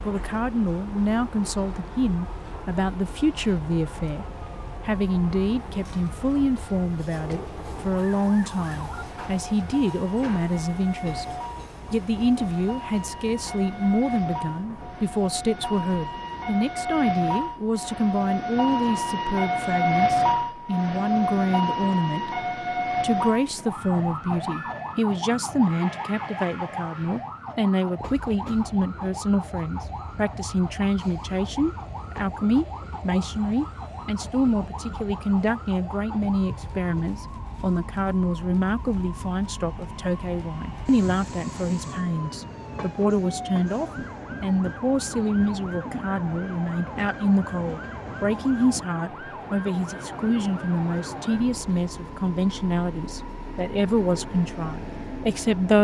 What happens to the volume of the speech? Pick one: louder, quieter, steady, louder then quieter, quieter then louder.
steady.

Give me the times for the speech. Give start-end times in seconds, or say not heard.
0.0-4.2, 4.8-11.2, 11.9-22.4, 23.0-55.7.